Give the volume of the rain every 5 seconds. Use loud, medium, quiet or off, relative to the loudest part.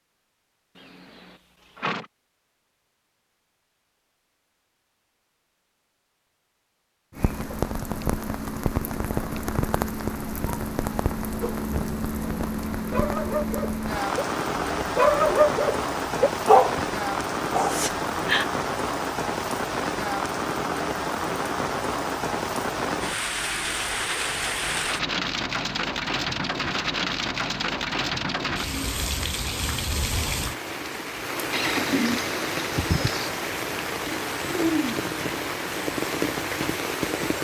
off, loud, loud, loud, loud, loud, loud, loud.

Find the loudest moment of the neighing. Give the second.
32 s.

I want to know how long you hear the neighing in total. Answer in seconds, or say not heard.
3 s.